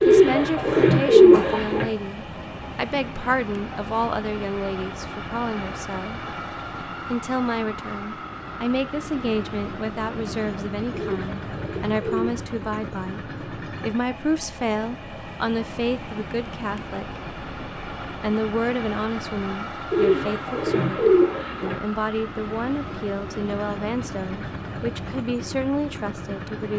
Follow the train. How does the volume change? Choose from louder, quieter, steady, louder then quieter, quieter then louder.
steady.